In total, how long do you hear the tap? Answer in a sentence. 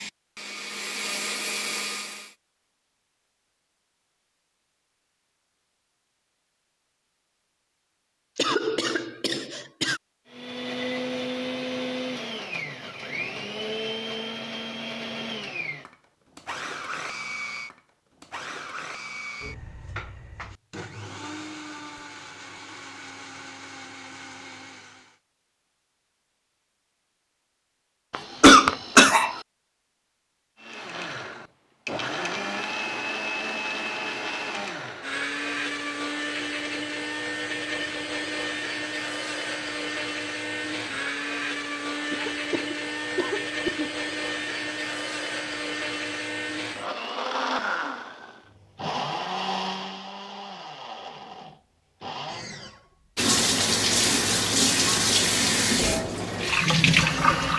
You can hear the tap for 4 seconds altogether.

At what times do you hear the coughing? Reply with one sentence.
You can hear the coughing from 8.3 to 10.0 s, from 28.1 to 29.4 s and from 42.1 to 43.9 s.